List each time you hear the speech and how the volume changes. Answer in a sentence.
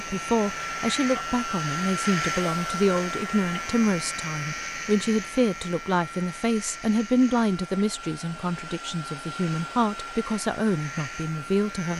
The speech can be heard from 0.0 to 11.9 s, at a steady volume.